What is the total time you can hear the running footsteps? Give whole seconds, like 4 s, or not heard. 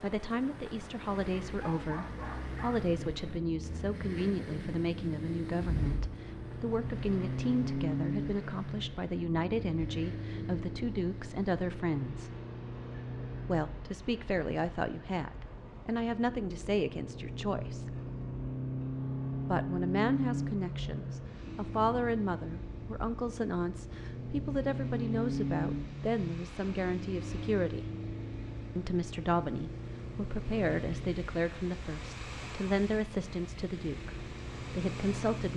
not heard.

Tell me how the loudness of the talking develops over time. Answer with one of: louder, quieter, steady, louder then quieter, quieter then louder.
steady.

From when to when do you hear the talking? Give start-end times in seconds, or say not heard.
0.0-12.3, 13.4-17.9, 19.4-27.9, 28.8-35.5.